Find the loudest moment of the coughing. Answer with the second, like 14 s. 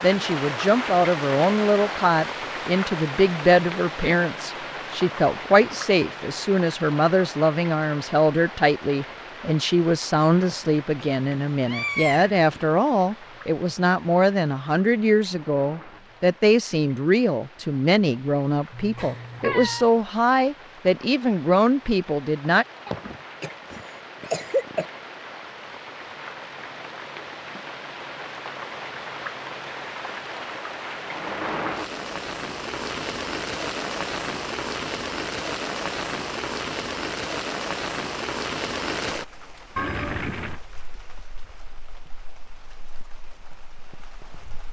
24 s.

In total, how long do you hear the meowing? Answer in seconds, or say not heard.
3 s.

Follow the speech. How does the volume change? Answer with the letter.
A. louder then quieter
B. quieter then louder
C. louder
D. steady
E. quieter
D.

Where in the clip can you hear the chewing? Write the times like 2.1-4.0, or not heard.
not heard.